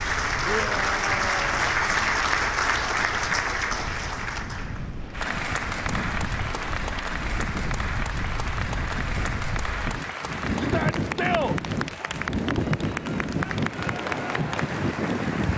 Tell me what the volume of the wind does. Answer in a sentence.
The loudness of the wind goes up.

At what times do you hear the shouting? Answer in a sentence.
The shouting can be heard from 0.5 to 1.6 s and from 10.6 to 12.1 s.